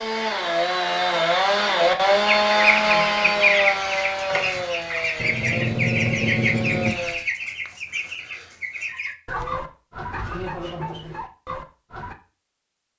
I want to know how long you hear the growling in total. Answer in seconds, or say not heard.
2 s.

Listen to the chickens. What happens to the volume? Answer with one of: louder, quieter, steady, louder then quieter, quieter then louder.
quieter.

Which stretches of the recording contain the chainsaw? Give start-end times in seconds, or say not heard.
0.0-7.2.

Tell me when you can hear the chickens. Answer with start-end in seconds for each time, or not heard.
2.2-12.2.